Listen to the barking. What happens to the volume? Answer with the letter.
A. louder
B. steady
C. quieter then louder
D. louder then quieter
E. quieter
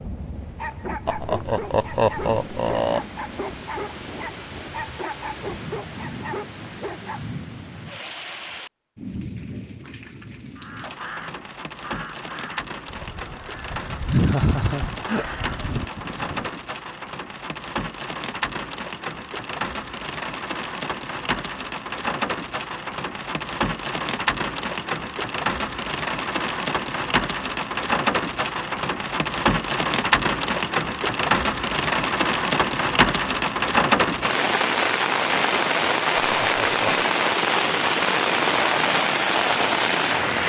B.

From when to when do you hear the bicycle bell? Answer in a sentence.
The bicycle bell can't be heard in this clip.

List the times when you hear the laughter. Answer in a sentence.
The laughter can be heard from 1.1 to 3.0 s, from 14.1 to 15.3 s and from 36.2 to 37.0 s.